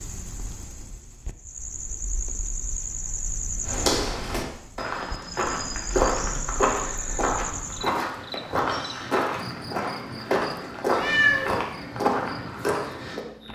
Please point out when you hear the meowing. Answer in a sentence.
The meowing can be heard from 10.9 to 11.6 s.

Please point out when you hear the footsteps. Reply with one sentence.
You can hear the footsteps from 3.6 to 13.2 s.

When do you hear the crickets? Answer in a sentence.
The crickets can be heard from 0.0 to 13.5 s.